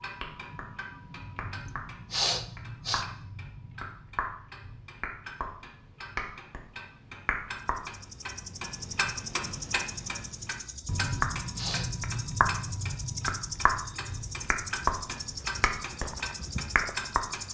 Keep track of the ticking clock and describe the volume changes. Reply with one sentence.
The loudness of the ticking clock goes up.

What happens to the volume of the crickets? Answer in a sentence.
The volume of the crickets stays about the same.